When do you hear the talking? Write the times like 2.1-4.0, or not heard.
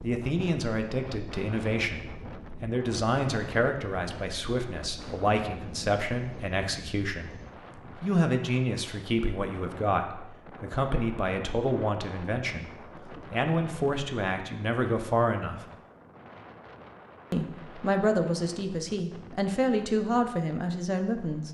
0.0-7.3, 8.0-15.7, 17.3-21.4.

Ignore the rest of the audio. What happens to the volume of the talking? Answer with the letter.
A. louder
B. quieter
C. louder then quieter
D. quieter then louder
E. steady
E.